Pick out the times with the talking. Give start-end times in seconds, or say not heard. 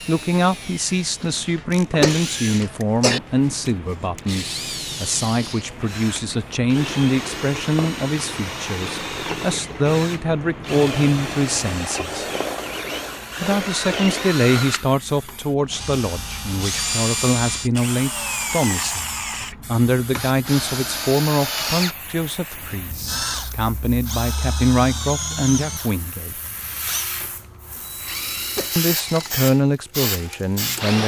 0.1-12.2, 13.4-26.4, 28.8-31.0.